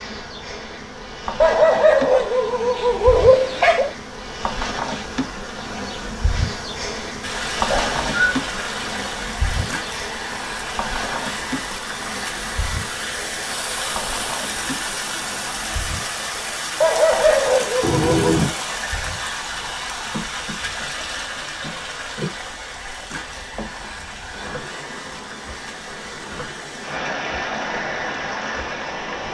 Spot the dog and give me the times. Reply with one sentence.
The dog can be heard from 1.4 to 3.9 s and from 16.8 to 18.4 s.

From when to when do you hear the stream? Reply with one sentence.
You can hear the stream from 7.2 to 29.2 s.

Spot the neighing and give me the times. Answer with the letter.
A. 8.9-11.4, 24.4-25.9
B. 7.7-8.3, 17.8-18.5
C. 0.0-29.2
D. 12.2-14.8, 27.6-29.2
B.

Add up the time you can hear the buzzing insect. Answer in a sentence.
You can hear the buzzing insect for 29 seconds altogether.